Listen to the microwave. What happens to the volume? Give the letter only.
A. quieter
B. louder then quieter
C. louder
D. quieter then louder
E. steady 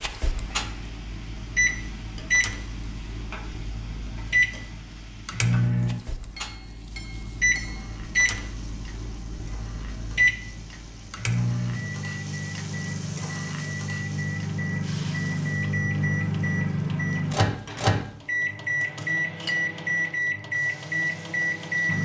E.